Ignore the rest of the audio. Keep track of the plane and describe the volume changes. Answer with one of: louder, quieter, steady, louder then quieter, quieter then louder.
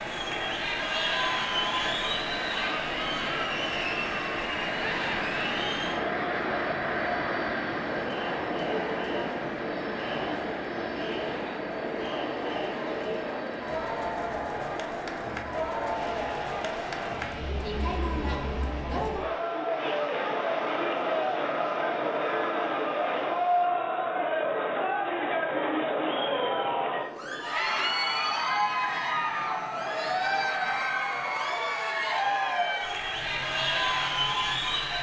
quieter.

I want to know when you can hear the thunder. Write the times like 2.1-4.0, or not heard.
not heard.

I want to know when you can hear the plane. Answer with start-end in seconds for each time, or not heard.
0.0-34.9.